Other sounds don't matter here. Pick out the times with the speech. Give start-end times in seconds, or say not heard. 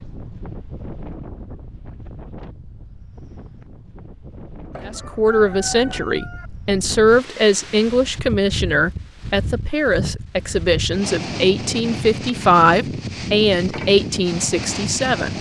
4.8-15.3.